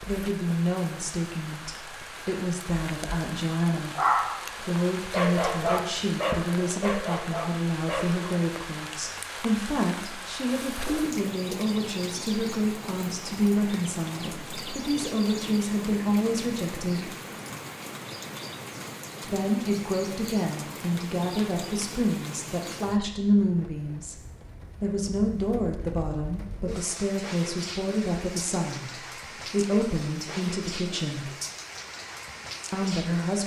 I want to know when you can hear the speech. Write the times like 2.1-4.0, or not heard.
0.0-17.1, 19.2-24.1, 24.8-31.4, 32.7-33.4.